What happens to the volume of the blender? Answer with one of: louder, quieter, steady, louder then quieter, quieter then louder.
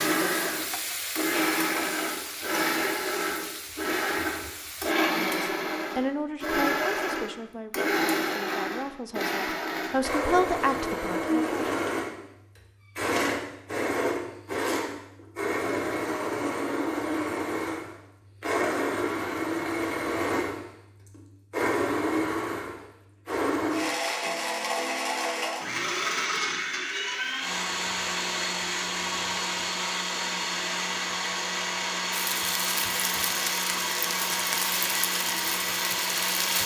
steady.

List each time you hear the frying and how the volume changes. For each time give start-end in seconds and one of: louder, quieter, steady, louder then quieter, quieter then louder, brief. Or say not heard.
0.0-5.0 quieter
32.1-36.6 steady.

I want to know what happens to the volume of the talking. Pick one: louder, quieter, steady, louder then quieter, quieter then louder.
quieter then louder.